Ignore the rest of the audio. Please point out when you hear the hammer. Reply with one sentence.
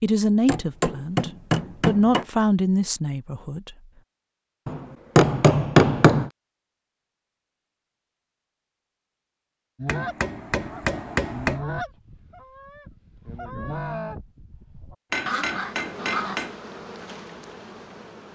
The hammer can be heard from 0.5 to 2.2 s, from 4.7 to 6.3 s, from 9.8 to 11.6 s and from 15.1 to 16.5 s.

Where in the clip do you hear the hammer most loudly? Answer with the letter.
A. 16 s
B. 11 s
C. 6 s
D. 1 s
C.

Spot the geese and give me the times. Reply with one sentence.
The geese can be heard from 9.8 to 16.4 s.